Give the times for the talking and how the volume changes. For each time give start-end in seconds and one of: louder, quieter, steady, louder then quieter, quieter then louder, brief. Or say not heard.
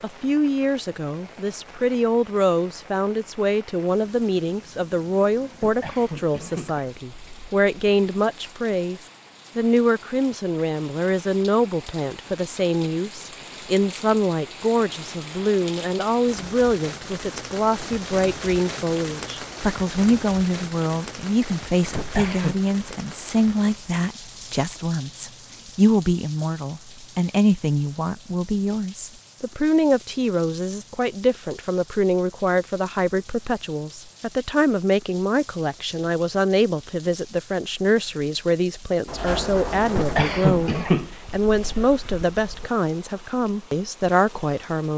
0.0-44.9 steady.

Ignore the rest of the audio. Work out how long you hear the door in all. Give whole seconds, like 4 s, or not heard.
2 s.